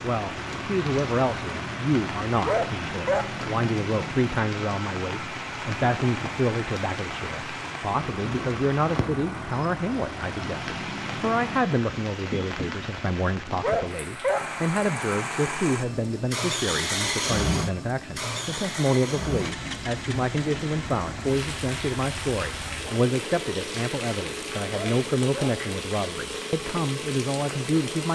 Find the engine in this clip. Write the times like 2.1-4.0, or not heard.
0.0-11.7, 14.3-28.1.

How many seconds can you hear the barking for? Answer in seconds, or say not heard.
3 s.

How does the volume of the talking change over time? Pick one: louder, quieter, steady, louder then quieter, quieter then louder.
steady.